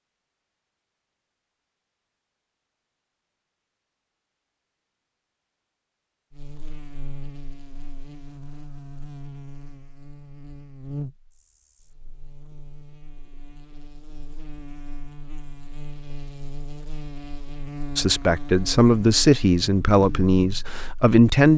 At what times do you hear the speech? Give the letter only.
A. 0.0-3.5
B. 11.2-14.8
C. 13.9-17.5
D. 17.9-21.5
D.